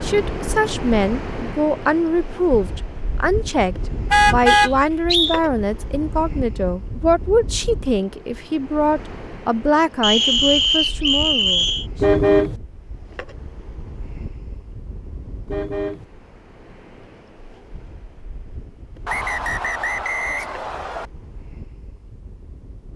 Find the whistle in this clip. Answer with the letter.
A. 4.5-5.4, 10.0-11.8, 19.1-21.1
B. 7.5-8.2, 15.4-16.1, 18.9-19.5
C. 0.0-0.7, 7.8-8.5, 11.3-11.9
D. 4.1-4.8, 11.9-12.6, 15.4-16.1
A.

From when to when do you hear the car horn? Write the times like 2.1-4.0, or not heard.
4.1-4.8, 11.9-12.6, 15.4-16.1.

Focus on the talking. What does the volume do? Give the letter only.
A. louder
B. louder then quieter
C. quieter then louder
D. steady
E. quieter
D.